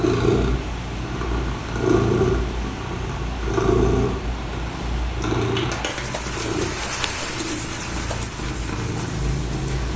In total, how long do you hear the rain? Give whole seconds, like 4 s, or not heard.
10 s.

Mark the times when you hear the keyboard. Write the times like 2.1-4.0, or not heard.
not heard.